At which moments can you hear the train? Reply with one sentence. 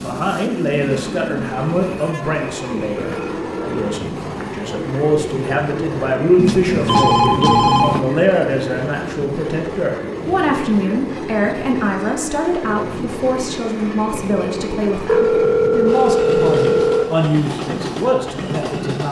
The train can be heard from 0.0 to 19.0 s.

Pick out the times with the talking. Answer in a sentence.
You can hear the talking from 0.0 to 19.0 s.